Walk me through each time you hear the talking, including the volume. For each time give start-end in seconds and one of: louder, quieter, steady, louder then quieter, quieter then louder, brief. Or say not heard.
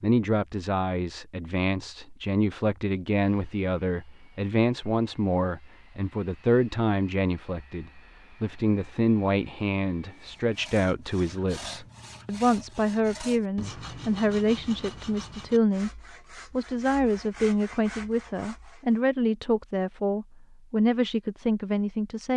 0.0-22.3 steady.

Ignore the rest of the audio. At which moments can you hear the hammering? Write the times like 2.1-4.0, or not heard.
not heard.